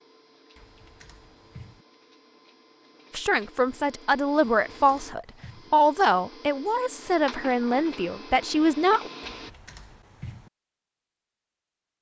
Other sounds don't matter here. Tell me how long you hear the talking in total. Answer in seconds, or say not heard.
6 s.